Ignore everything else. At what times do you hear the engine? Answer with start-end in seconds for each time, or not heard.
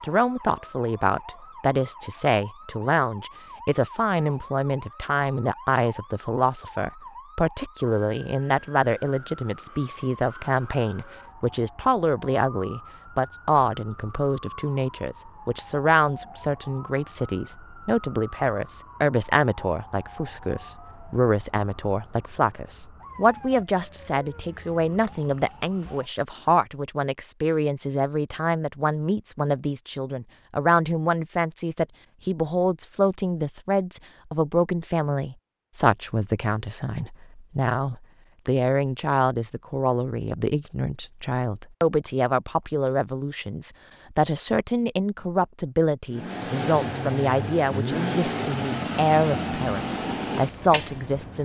46.1-51.4.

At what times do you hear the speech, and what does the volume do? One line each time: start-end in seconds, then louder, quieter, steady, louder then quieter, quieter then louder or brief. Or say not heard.
0.0-51.4 steady.